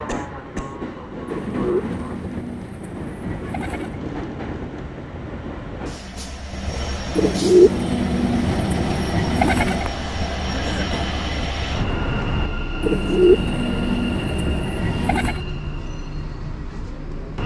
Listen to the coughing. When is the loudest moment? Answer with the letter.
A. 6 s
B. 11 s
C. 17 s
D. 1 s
B.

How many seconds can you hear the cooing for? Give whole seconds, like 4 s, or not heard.
8 s.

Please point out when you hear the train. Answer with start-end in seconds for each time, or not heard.
0.0-17.4.